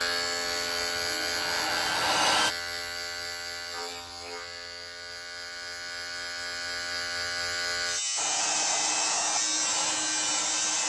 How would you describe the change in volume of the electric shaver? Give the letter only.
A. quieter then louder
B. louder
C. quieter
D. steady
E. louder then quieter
A.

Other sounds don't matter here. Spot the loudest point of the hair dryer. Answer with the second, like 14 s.
2 s.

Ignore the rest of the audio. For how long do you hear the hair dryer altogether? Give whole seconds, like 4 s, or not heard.
5 s.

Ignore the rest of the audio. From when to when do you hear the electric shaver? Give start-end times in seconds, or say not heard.
0.0-10.8.